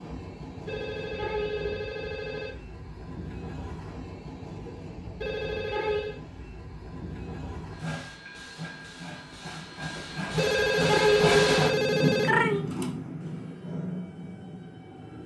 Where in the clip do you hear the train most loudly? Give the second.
12 s.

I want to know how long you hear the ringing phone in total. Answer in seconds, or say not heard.
5 s.